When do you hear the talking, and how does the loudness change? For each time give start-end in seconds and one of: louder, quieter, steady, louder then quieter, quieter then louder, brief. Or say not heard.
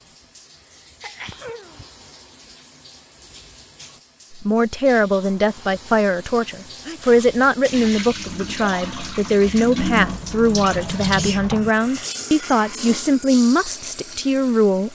4.3-14.8 steady.